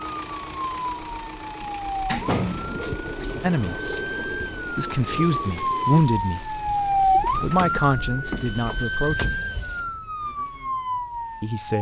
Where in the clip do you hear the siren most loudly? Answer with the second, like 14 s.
7 s.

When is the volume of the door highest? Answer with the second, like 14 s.
2 s.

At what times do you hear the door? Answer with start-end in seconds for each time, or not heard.
1.6-2.9, 7.3-9.9.